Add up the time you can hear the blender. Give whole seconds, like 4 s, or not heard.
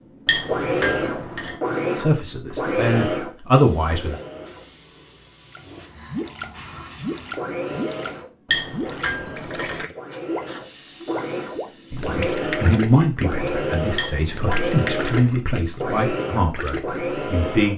15 s.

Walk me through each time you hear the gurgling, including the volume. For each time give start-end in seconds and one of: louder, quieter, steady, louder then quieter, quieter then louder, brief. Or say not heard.
5.5-17.0 steady.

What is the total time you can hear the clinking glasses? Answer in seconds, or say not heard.
4 s.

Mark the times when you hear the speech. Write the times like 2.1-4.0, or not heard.
1.9-4.2, 11.9-17.7.